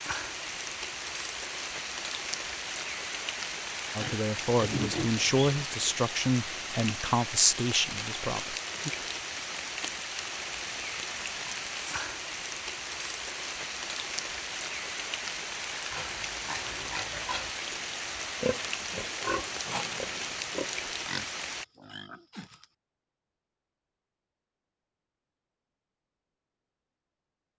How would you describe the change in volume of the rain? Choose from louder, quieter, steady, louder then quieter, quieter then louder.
steady.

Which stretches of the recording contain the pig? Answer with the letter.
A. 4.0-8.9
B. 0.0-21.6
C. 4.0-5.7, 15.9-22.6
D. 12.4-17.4
C.